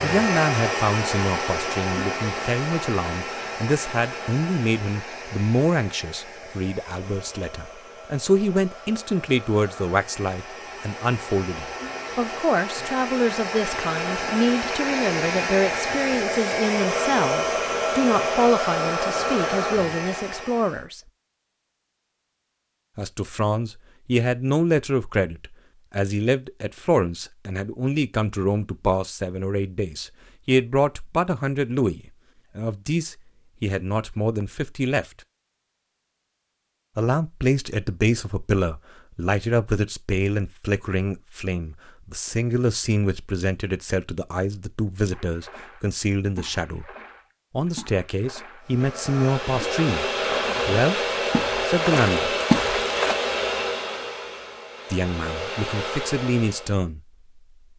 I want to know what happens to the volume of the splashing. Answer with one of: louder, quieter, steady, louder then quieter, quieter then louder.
louder.